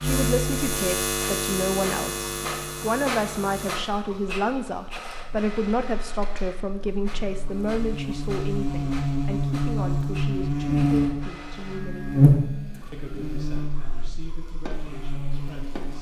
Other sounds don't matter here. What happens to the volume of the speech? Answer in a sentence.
The loudness of the speech goes down.